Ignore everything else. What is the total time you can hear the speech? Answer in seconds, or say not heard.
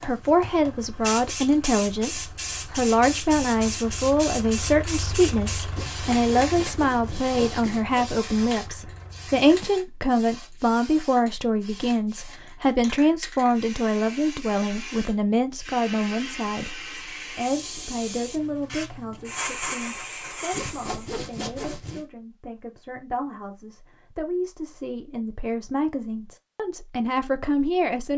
28 s.